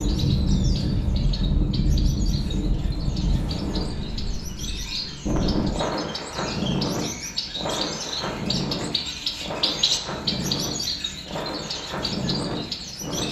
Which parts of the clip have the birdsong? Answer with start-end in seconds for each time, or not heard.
0.0-13.2.